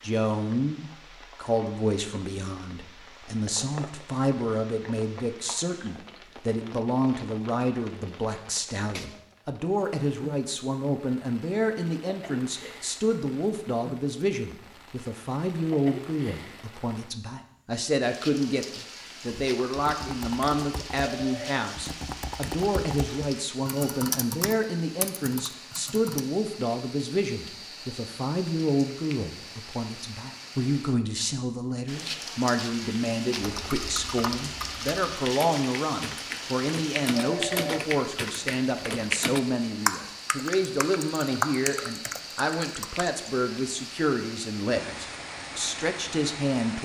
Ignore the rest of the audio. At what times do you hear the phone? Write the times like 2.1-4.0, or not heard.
21.0-21.6, 37.1-37.9.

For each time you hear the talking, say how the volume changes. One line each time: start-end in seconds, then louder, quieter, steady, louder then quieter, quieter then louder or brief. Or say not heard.
0.0-46.7 steady.